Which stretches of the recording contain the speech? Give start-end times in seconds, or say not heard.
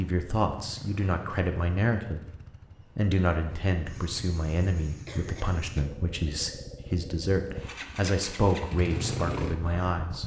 0.0-10.2.